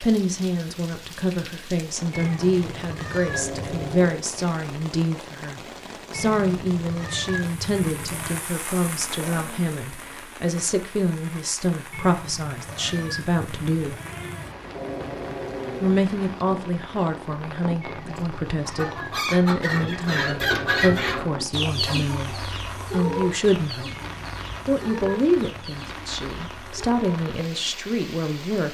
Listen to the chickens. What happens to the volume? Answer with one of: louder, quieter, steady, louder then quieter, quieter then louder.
quieter.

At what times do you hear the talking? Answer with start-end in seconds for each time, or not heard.
0.0-14.0, 15.8-23.9, 24.6-28.6.